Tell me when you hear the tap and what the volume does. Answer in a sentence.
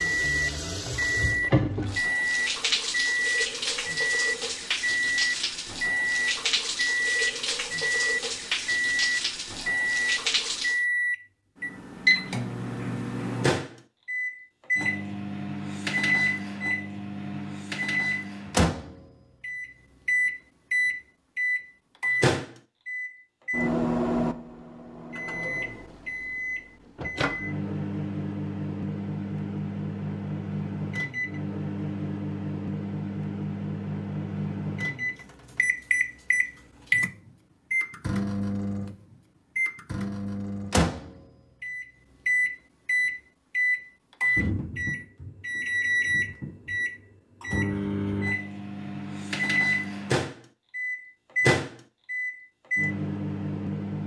The tap can be heard from 0.0 to 10.8 s, at a steady volume.